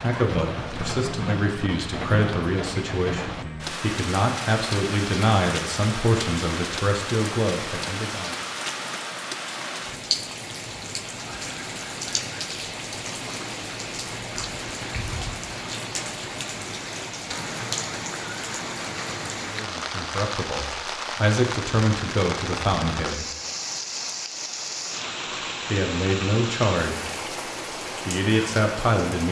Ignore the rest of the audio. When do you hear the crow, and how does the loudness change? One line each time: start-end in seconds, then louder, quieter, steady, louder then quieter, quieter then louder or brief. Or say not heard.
not heard.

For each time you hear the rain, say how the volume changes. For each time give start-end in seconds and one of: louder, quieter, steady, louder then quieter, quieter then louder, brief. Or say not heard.
0.0-29.2 steady.